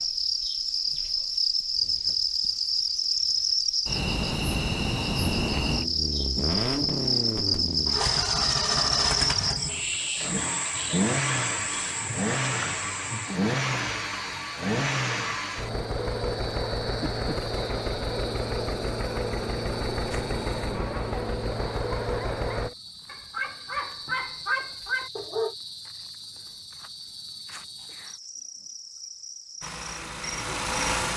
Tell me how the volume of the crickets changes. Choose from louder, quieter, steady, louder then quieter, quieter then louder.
quieter.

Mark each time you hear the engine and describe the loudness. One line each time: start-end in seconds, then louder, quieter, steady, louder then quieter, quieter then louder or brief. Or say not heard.
5.2-22.7 steady
29.6-31.1 brief.